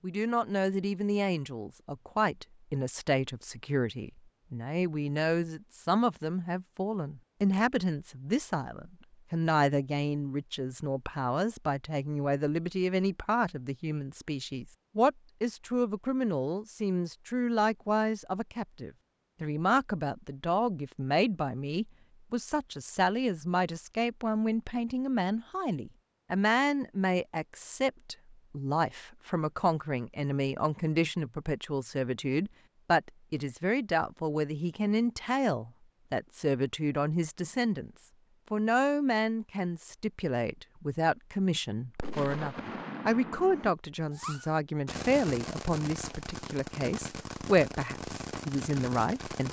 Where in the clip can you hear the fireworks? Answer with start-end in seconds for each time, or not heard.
42.0-49.4.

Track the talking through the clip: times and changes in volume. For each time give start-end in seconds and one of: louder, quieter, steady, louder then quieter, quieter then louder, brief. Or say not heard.
0.0-49.4 steady.